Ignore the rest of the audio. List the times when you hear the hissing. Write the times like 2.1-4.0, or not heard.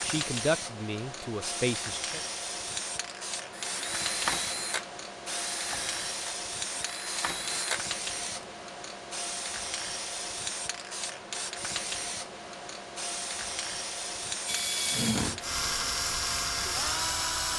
0.0-17.5.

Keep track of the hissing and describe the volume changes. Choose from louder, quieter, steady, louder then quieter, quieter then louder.
steady.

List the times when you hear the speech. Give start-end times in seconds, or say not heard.
0.0-2.2.